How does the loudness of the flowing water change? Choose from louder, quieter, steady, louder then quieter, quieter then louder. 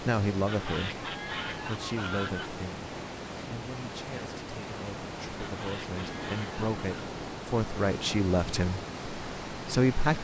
steady.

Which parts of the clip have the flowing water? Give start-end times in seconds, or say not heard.
0.0-10.2.